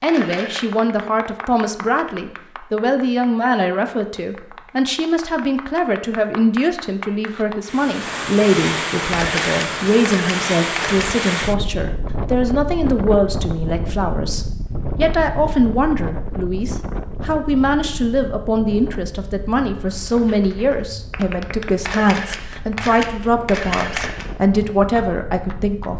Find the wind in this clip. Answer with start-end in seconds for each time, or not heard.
7.6-25.9.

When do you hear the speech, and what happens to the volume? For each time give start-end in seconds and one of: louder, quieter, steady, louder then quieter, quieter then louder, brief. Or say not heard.
0.0-25.9 steady.